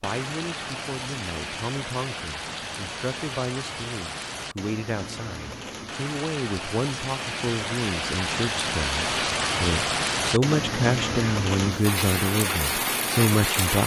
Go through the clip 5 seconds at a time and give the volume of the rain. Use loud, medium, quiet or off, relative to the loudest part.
medium, loud, loud.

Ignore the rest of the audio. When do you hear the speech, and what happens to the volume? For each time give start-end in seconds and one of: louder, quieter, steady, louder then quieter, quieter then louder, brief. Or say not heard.
0.0-13.8 louder.